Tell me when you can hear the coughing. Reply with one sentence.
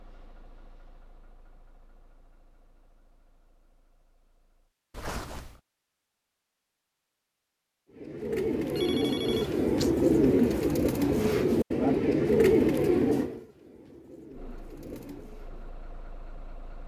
You can't hear the coughing here.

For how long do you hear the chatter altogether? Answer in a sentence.
You can't hear the chatter here.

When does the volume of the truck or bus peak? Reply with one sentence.
The loudest moment of the truck or bus is at 16 seconds.